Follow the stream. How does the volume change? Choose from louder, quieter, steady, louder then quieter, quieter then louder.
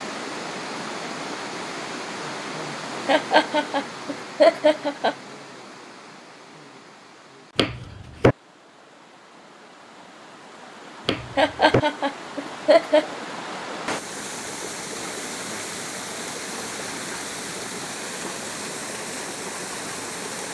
quieter then louder.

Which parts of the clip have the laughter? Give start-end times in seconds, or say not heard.
3.0-5.2, 11.3-13.1.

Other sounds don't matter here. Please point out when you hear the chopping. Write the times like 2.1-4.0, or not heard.
7.5-8.3, 11.1-11.8.